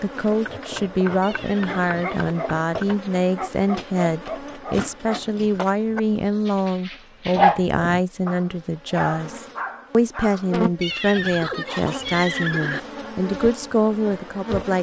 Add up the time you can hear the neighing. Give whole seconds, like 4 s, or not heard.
3 s.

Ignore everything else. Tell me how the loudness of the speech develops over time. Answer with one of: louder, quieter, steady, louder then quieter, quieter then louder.
steady.